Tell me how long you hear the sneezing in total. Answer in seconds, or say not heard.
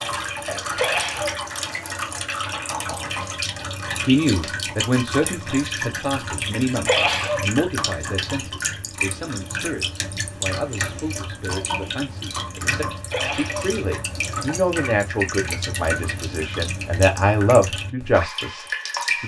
2 s.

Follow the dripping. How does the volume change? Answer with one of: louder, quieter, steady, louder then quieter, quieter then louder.
steady.